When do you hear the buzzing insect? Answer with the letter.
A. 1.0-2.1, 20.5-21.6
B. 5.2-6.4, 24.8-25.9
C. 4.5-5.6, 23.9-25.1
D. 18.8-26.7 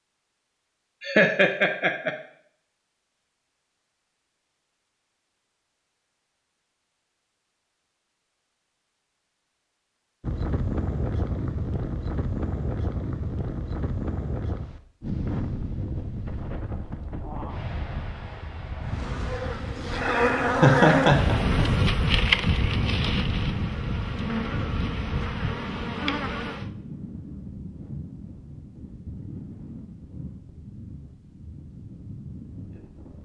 D.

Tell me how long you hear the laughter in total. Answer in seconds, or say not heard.
2 s.